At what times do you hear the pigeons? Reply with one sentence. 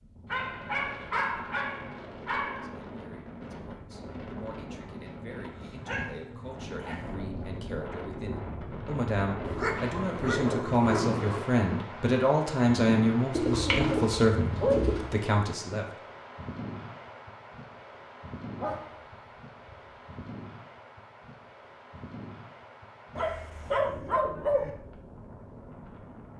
The pigeons can be heard from 13.3 to 15.1 s.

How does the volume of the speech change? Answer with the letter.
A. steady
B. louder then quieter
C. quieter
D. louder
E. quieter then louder
D.